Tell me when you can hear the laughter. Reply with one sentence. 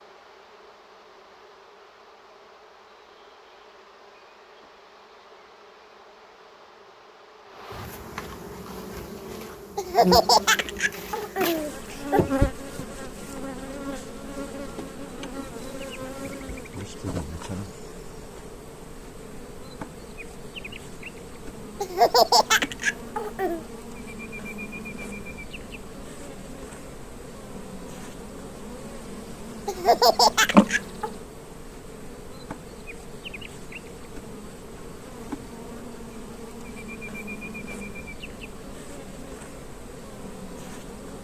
The laughter can be heard from 9.8 to 12.2 s, from 21.8 to 23.6 s and from 29.6 to 31.1 s.